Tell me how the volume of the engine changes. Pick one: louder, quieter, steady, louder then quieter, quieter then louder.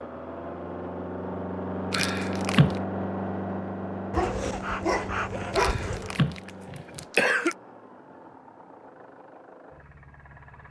quieter.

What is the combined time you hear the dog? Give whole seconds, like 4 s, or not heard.
2 s.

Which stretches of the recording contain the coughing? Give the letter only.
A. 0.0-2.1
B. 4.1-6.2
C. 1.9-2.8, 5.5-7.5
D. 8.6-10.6
C.